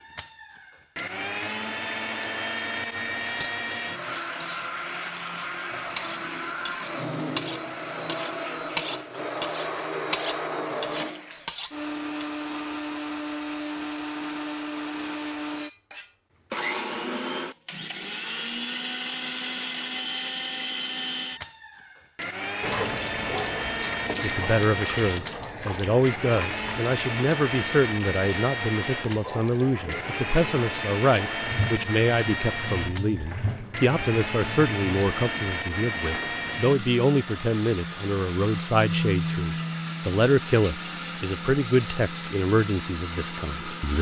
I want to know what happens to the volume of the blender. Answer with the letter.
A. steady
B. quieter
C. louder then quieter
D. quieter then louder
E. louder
A.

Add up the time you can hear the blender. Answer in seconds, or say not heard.
44 s.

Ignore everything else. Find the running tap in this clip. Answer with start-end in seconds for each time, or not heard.
22.6-36.6.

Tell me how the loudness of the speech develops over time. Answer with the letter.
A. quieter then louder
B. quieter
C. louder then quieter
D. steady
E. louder
D.